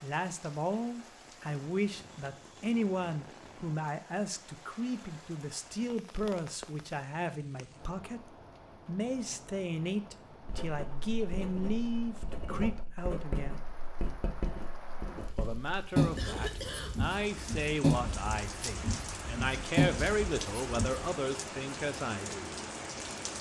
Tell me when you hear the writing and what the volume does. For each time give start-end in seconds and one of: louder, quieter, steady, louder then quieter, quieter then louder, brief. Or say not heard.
10.4-21.1 louder.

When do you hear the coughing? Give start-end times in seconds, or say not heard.
16.1-17.1.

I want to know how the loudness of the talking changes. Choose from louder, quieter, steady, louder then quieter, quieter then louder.
steady.